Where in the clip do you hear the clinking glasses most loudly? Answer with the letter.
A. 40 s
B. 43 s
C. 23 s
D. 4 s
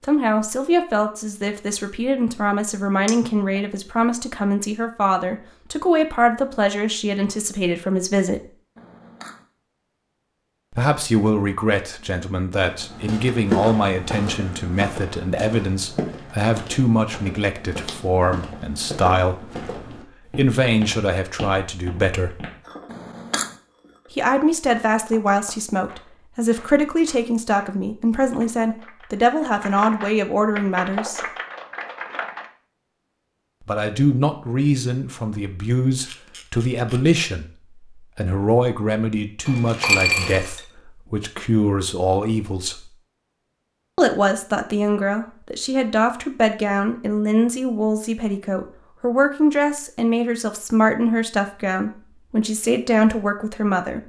A.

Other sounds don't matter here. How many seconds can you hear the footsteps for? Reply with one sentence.
The footsteps can be heard for 10 seconds in total.